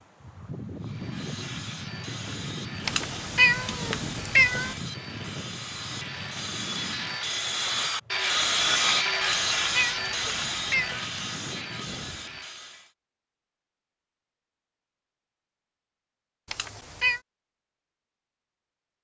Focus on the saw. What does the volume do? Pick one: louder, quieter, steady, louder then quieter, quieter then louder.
louder then quieter.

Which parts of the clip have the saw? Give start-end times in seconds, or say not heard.
0.8-12.9.